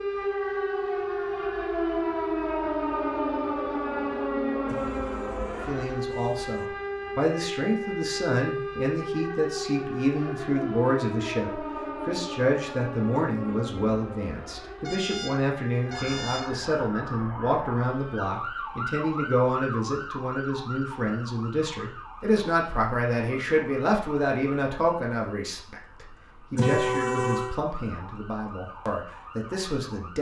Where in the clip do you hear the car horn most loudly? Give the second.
27 s.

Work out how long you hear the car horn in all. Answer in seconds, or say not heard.
5 s.